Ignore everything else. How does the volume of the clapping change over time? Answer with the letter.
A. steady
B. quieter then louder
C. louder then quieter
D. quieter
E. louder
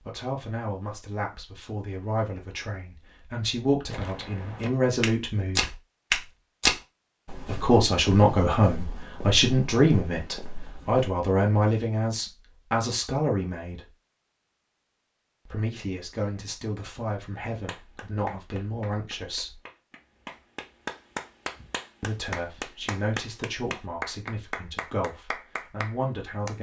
E.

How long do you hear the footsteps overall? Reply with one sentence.
The footsteps can be heard for 7 seconds in total.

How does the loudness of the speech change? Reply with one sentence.
The loudness of the speech goes up, then down.